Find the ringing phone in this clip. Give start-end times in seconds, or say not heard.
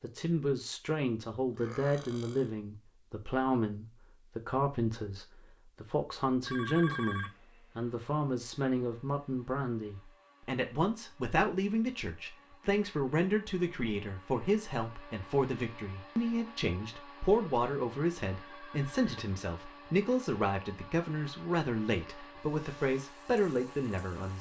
6.5-7.3, 18.4-19.1.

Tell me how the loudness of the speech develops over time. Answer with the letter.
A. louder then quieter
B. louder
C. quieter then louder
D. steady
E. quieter
D.